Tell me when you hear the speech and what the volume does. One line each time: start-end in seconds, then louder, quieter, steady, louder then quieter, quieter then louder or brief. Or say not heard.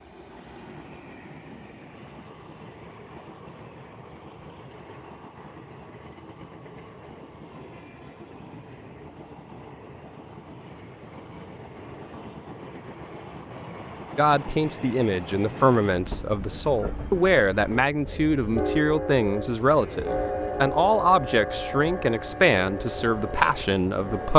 14.2-24.3 steady.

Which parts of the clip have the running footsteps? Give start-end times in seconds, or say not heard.
not heard.